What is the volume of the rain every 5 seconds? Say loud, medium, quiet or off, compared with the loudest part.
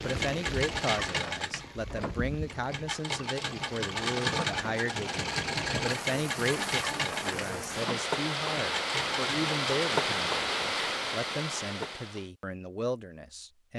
medium, loud, loud.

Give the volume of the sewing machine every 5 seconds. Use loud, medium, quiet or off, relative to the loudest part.
loud, loud, off.